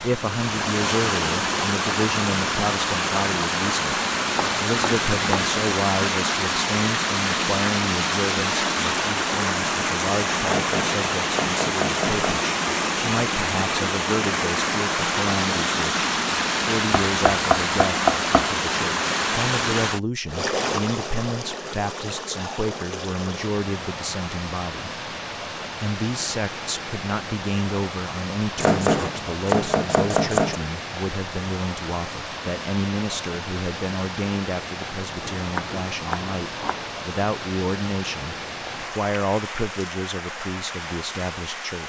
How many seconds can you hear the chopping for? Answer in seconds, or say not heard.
8 s.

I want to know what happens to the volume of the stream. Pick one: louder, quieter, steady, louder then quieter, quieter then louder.
quieter.